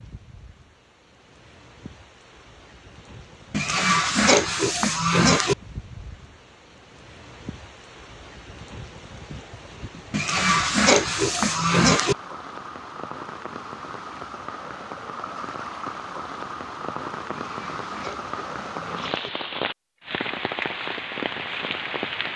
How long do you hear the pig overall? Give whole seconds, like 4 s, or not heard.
6 s.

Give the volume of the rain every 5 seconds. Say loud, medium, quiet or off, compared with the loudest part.
quiet, quiet, medium, loud, loud.